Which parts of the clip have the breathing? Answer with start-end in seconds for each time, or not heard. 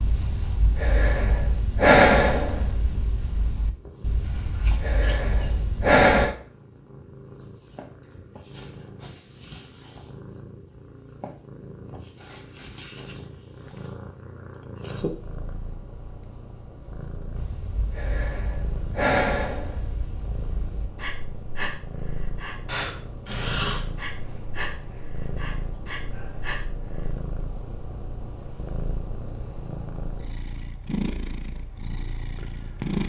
0.0-6.3, 17.3-27.1.